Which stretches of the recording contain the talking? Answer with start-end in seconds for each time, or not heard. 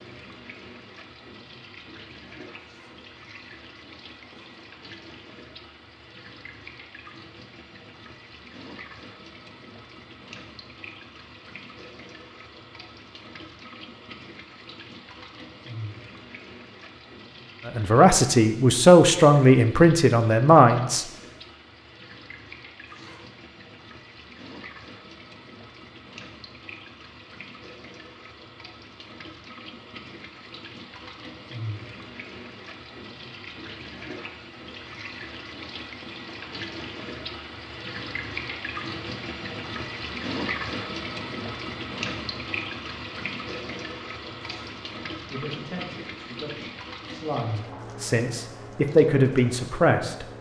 17.6-21.1, 45.3-50.2.